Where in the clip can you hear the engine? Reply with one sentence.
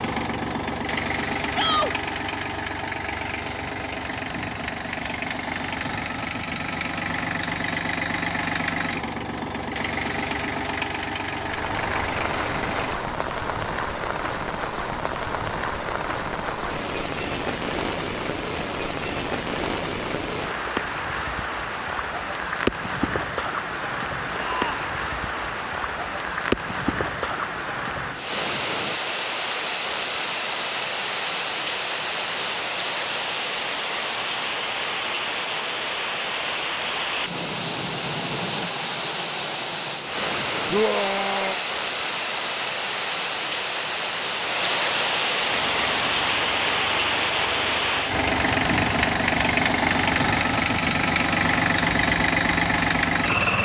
You can hear the engine from 0.0 to 12.9 s and from 45.5 to 53.5 s.